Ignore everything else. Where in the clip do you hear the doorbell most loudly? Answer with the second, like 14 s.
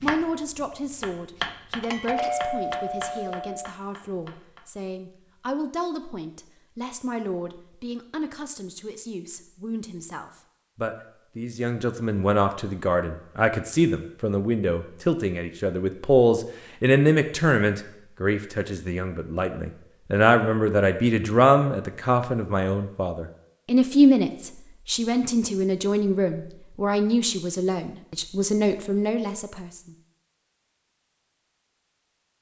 2 s.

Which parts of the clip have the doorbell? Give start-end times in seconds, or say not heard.
1.8-3.7.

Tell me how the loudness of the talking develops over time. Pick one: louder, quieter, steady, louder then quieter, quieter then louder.
louder.